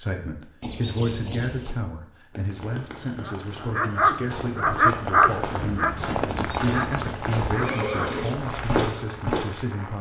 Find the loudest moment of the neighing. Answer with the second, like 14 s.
8 s.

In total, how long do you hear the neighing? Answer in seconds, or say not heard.
3 s.